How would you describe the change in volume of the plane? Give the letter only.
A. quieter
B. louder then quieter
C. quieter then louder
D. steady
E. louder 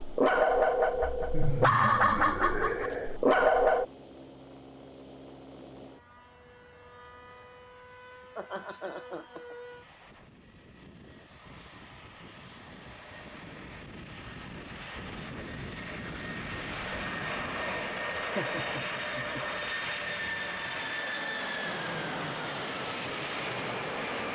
E.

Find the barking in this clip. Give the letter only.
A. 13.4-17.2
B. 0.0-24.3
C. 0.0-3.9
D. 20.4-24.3
C.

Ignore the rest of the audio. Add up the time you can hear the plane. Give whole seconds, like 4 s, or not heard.
24 s.